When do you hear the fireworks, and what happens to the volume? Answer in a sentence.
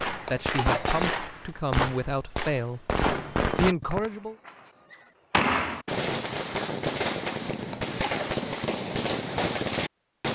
The fireworks can be heard from 0.0 to 10.3 s, at a steady volume.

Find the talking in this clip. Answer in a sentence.
The talking can be heard from 0.1 to 4.3 s.